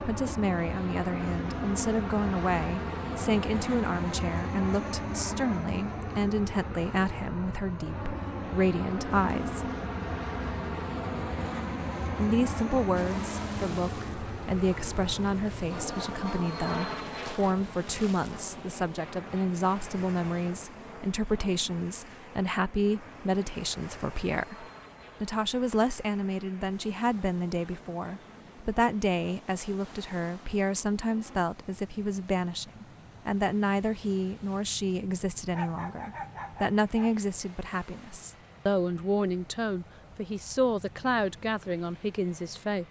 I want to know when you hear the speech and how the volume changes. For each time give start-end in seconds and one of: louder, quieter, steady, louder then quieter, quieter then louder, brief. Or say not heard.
0.0-9.7 steady
12.2-42.8 steady.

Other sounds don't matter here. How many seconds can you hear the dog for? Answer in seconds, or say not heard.
2 s.